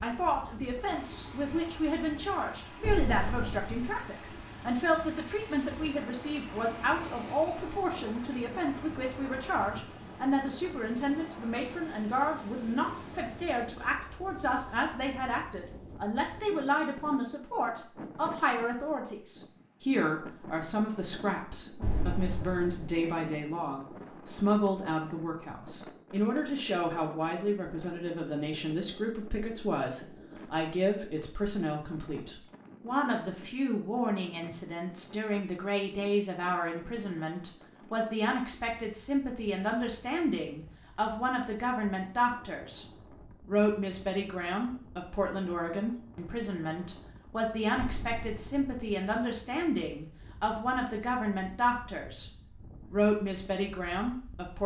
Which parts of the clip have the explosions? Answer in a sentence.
The explosions can be heard from 2.8 to 3.8 s, from 21.8 to 23.0 s and from 47.8 to 48.7 s.